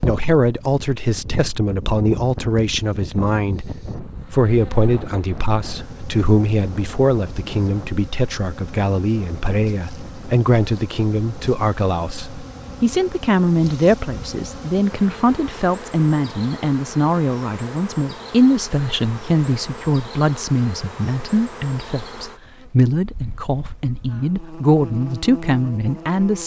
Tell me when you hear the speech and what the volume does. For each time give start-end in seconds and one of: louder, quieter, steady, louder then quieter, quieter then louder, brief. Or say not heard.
0.0-26.4 steady.